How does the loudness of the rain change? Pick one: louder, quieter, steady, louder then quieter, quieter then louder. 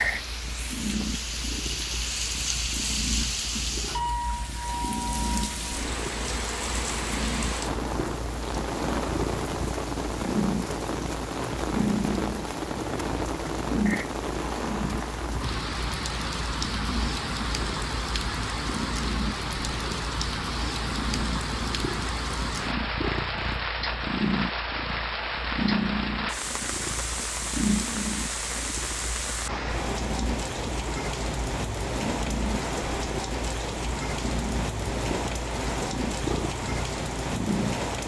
steady.